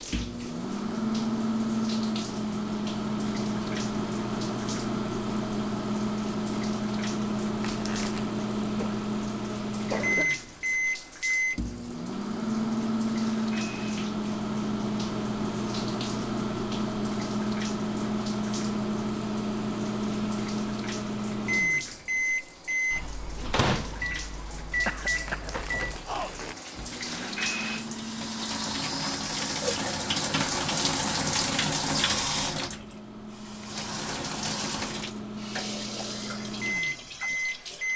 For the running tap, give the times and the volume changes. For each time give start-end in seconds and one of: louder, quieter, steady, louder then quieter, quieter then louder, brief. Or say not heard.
0.0-37.9 louder.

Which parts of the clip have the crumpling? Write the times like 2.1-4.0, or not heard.
7.6-8.3, 25.2-26.6.